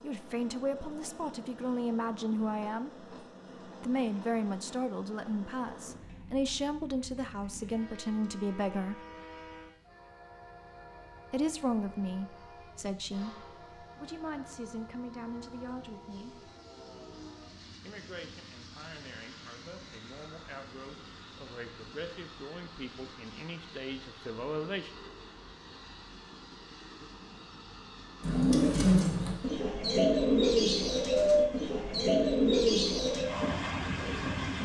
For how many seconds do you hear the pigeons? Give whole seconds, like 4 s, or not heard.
6 s.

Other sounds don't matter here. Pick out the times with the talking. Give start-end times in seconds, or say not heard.
0.0-2.9, 3.8-9.0, 11.3-16.5, 17.8-25.0.